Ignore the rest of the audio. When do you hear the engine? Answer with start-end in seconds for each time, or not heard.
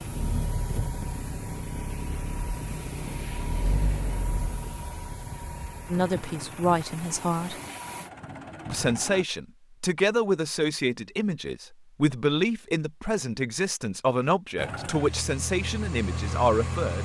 0.0-9.2, 14.6-17.0.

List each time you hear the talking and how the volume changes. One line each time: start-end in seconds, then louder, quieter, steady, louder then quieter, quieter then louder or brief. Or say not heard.
5.9-7.5 brief
8.7-17.0 steady.